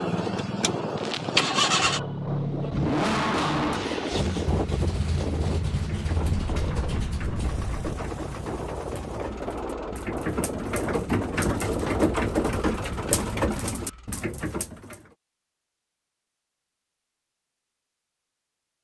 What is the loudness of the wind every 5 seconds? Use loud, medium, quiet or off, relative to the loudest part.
loud, loud, loud, off.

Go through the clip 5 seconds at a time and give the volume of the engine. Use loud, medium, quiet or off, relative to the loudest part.
loud, medium, quiet, off.